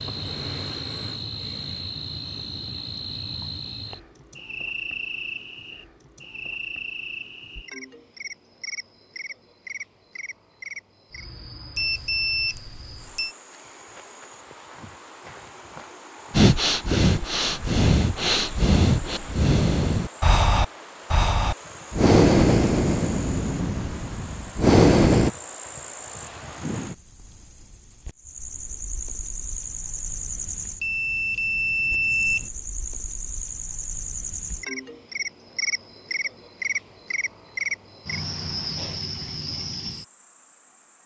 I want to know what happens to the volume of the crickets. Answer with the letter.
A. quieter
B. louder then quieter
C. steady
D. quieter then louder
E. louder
D.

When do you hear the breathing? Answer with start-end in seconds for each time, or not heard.
16.3-25.3.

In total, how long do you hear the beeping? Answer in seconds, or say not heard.
3 s.